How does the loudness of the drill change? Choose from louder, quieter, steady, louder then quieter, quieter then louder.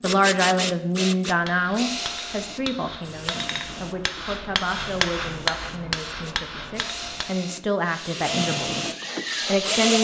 quieter then louder.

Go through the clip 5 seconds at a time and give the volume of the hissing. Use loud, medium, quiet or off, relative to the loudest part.
off, loud.